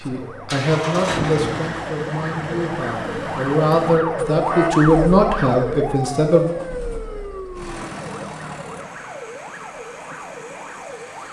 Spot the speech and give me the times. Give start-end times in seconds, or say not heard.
0.0-6.5.